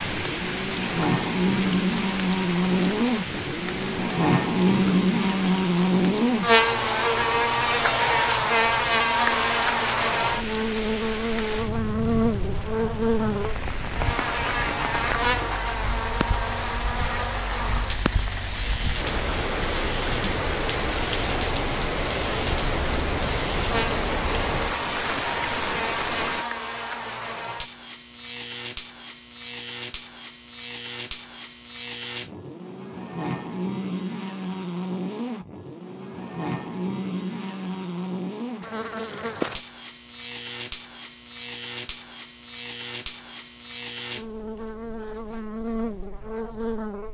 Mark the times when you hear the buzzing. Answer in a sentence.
You can hear the buzzing from 0.0 to 47.0 s.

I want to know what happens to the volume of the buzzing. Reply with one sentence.
The loudness of the buzzing goes down.